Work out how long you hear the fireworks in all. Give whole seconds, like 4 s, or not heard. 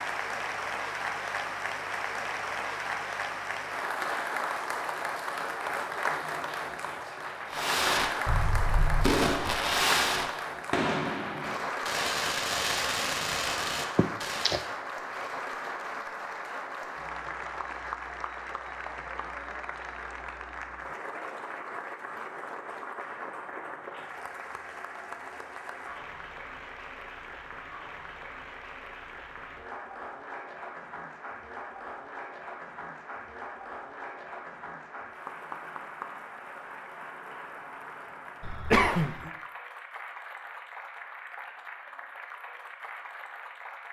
7 s.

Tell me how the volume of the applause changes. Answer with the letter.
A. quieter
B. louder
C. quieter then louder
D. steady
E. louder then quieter
A.